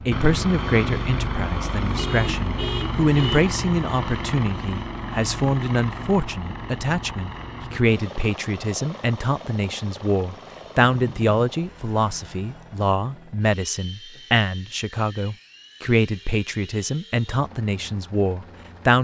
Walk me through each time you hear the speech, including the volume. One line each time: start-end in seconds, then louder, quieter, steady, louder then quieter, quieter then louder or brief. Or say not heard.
0.1-18.9 steady.